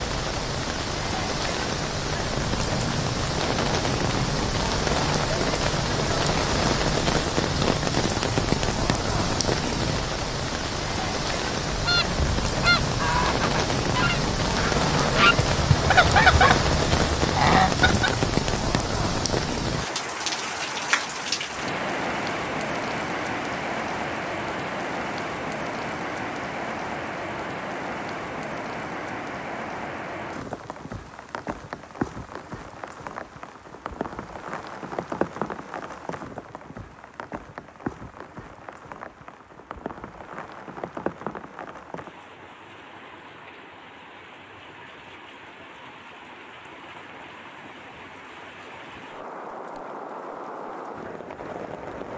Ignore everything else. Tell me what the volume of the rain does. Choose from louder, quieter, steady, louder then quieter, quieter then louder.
quieter.